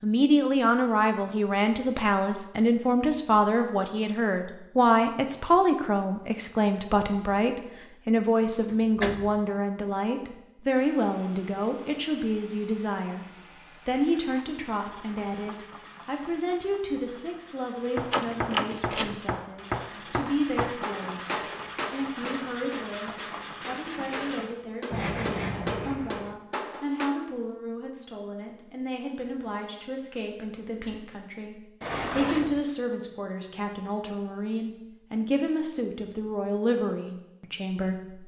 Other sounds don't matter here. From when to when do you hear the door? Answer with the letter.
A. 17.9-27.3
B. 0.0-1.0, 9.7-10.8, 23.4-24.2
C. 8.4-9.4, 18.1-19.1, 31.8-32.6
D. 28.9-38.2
C.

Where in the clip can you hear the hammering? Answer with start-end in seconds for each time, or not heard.
17.9-27.3.